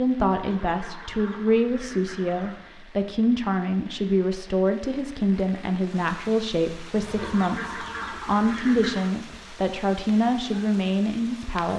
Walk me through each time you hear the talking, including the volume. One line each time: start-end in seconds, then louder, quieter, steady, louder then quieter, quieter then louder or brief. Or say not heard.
0.0-11.7 steady.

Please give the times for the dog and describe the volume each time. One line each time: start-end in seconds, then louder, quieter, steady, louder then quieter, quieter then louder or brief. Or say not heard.
not heard.